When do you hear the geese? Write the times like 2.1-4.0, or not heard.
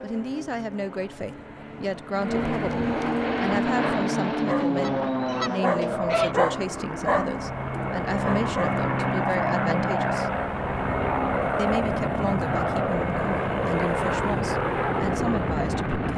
4.8-6.3.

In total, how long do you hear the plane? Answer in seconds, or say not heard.
16 s.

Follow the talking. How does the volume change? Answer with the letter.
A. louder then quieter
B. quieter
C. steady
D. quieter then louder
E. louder
C.